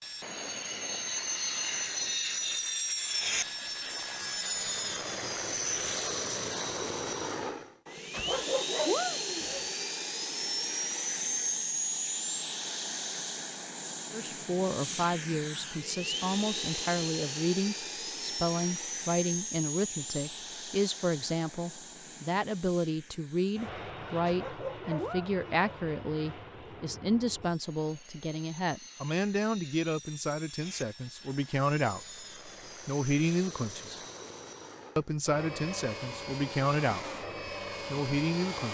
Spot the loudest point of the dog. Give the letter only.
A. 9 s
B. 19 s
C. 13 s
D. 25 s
A.